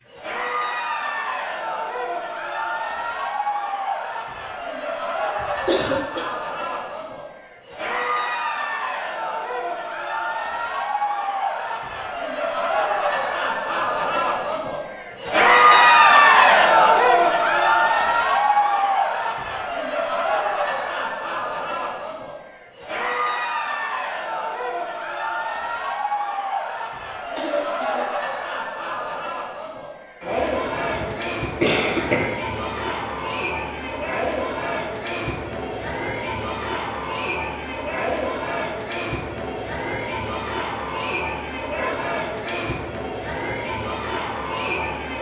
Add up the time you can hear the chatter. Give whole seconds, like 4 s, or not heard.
45 s.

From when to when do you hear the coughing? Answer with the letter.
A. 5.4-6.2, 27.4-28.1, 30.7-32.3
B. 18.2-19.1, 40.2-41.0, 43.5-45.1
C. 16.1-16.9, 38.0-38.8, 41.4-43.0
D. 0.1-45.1
A.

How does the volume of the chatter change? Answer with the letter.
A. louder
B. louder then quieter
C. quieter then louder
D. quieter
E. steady
B.